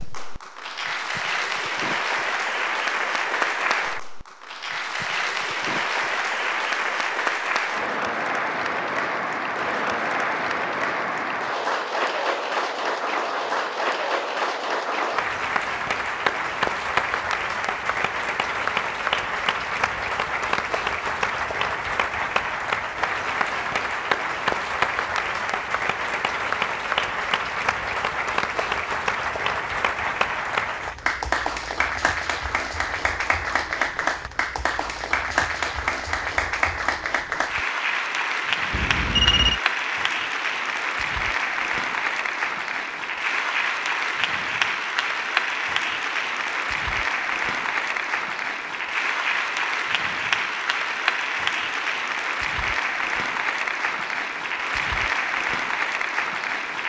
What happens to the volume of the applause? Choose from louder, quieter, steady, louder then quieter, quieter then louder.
steady.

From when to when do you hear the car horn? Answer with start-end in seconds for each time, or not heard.
38.7-39.6.